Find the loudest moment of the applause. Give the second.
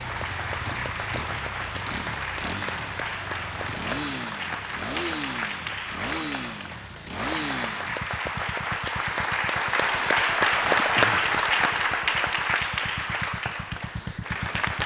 11 s.